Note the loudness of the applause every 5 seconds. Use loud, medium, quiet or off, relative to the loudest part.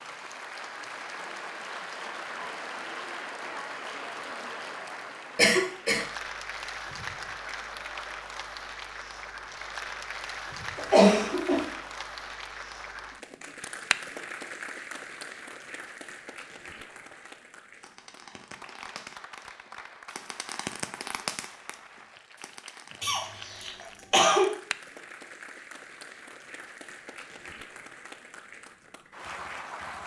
loud, loud, loud, medium, medium, medium.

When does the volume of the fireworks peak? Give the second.
21 s.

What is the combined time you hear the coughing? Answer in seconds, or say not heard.
3 s.